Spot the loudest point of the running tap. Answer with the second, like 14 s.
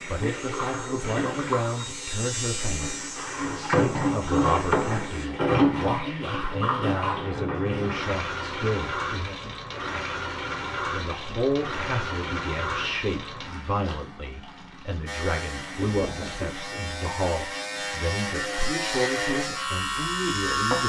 5 s.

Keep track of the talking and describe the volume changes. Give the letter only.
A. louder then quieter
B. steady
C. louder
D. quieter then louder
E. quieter
B.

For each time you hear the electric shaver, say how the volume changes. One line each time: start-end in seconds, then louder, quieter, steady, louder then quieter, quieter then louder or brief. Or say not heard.
0.0-5.3 louder then quieter
15.1-20.8 louder.